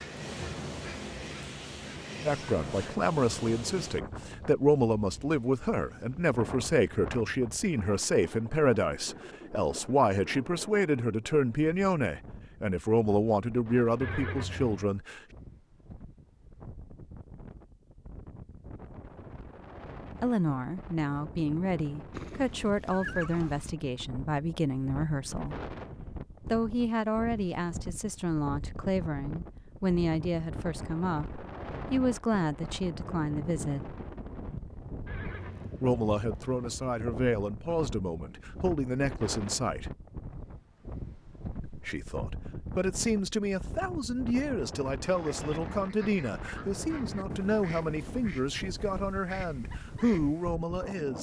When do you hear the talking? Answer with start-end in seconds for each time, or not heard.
2.2-15.2, 20.1-25.6, 26.4-34.0, 35.8-39.9, 41.6-51.1.